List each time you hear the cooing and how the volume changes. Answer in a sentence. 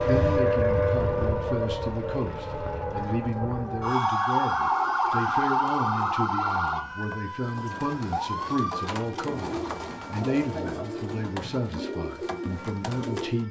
You can hear the cooing from 4.5 to 13.4 s, getting louder.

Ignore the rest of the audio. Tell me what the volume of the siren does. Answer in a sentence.
The loudness of the siren goes down.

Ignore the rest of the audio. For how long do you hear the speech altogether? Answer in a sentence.
The speech can be heard for 13 seconds in total.